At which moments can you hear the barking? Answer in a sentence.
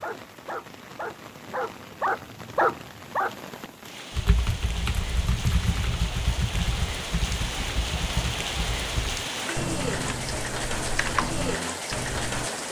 You can hear the barking from 0.0 to 3.8 s.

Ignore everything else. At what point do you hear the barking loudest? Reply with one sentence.
The loudest moment of the barking is at 3 seconds.